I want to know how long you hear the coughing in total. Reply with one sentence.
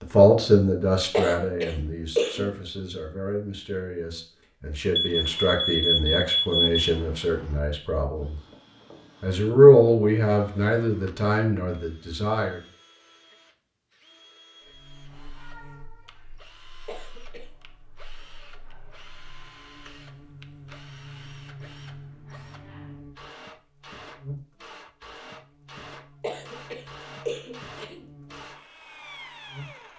The coughing can be heard for 4 seconds in total.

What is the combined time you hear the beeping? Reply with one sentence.
You can hear the beeping for 2 seconds altogether.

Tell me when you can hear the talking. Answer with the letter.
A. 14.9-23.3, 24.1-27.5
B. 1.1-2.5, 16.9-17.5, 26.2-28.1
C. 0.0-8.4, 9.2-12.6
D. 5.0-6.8
C.